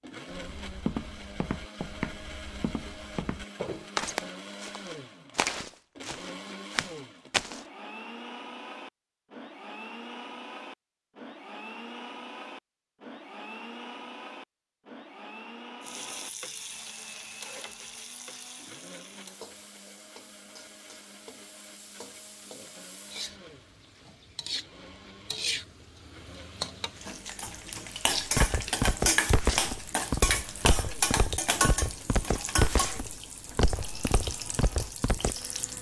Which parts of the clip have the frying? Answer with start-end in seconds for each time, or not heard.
15.8-35.7.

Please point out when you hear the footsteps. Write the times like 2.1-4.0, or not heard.
0.3-7.7, 28.1-35.4.